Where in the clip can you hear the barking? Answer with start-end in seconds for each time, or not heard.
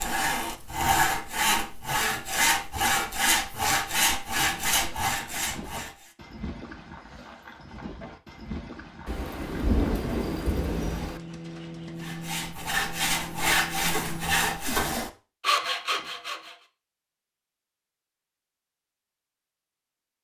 not heard.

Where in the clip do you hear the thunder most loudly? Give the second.
10 s.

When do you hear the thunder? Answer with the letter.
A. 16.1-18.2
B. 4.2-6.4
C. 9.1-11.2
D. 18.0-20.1
C.